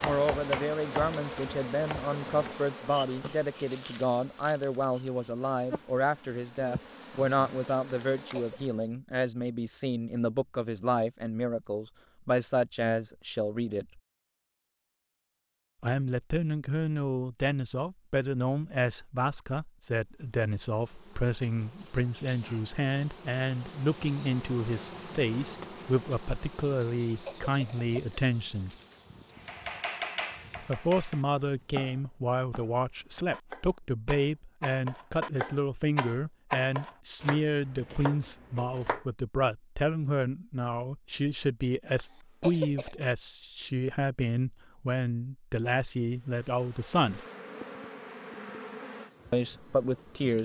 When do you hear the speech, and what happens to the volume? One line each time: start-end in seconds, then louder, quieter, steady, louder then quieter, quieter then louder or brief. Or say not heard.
0.0-14.0 steady
15.8-28.8 steady
30.6-47.2 steady
49.3-50.3 brief.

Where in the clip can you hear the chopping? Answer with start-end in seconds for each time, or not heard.
0.0-2.6, 29.4-39.0.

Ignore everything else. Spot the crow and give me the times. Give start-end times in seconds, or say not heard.
not heard.